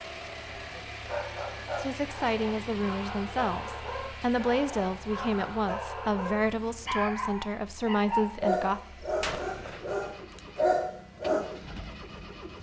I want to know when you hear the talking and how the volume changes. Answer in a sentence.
The talking can be heard from 1.8 to 8.8 s, at a steady volume.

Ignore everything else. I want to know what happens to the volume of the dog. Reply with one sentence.
The loudness of the dog goes up.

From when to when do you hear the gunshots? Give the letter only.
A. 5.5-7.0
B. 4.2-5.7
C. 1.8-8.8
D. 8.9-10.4
D.